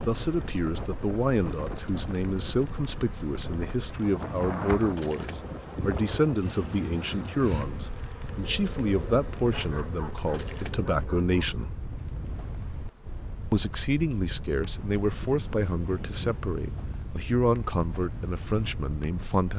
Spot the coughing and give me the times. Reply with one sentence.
You can't hear the coughing here.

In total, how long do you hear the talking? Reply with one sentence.
You can hear the talking for 18 seconds altogether.